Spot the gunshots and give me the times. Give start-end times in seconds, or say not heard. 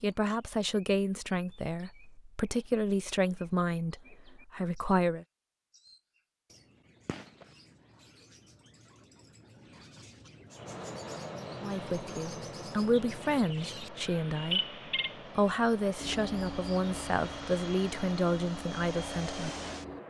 7.0-7.5.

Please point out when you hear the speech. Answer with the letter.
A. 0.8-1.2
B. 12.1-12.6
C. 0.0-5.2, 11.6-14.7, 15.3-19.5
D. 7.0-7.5
C.